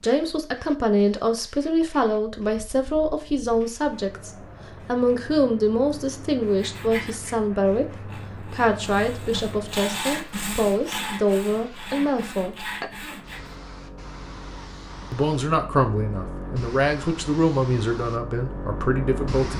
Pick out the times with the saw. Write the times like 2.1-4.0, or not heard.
6.5-13.6.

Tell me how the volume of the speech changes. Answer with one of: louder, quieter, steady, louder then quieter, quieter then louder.
steady.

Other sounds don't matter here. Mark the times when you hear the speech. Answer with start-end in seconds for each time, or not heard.
0.0-12.7, 15.1-19.5.